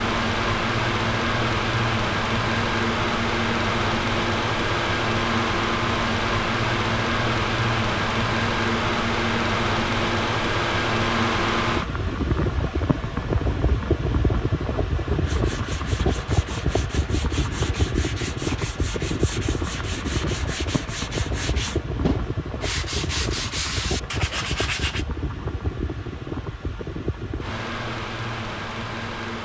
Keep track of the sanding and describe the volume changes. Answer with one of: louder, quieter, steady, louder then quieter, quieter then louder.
louder.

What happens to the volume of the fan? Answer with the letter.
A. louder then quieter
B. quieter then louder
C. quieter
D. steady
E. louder
C.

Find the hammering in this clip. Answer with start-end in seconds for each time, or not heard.
not heard.